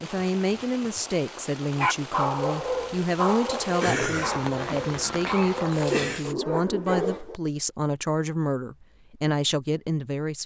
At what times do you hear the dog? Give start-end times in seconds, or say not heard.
1.8-7.3.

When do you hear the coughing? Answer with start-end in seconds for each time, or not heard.
3.8-6.2.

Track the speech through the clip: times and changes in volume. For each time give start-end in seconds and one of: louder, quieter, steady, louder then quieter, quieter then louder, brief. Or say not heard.
0.0-10.4 steady.